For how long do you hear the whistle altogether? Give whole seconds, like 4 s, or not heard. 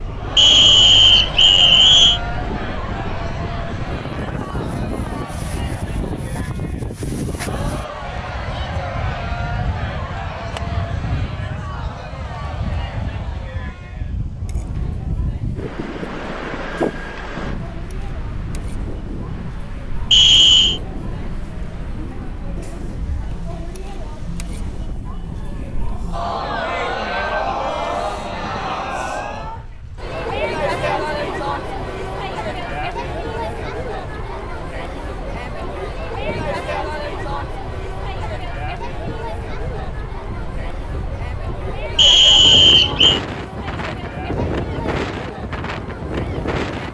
4 s.